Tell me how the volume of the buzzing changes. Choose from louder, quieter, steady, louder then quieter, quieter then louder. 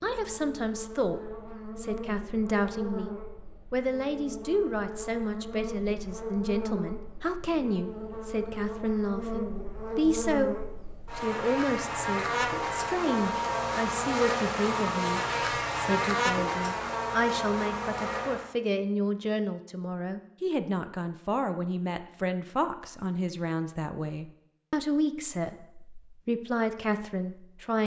louder.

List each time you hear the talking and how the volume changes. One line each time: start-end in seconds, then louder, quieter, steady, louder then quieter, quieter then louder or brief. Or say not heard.
0.0-27.8 steady.